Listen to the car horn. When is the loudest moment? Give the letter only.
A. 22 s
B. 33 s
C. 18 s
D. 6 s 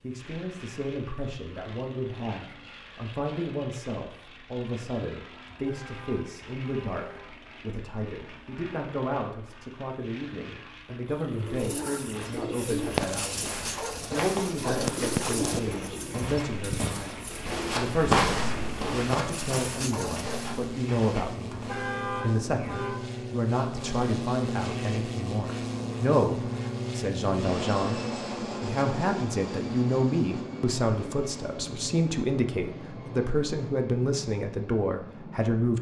A.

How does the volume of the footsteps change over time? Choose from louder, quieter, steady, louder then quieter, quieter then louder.
louder then quieter.